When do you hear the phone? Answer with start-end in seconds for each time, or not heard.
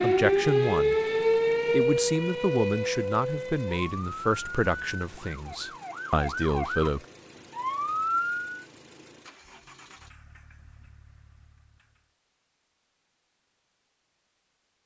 not heard.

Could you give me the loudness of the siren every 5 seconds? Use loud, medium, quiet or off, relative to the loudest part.
loud, medium, off.